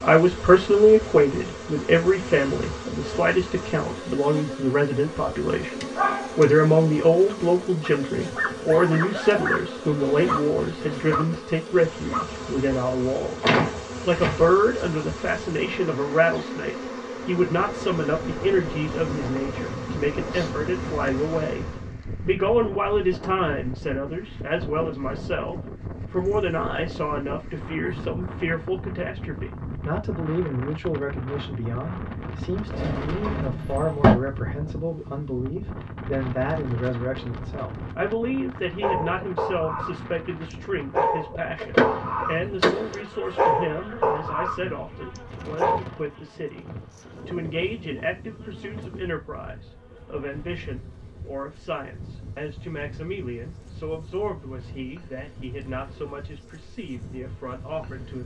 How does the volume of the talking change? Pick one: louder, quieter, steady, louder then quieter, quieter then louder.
quieter.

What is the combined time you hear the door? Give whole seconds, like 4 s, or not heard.
4 s.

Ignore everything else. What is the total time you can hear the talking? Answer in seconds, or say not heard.
58 s.